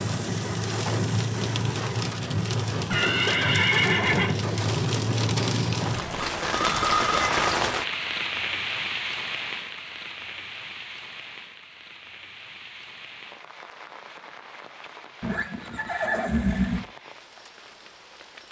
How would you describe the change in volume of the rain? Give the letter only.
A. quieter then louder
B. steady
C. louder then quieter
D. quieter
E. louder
D.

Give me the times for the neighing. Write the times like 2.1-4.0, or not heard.
2.9-4.3, 6.3-7.3, 15.2-16.9.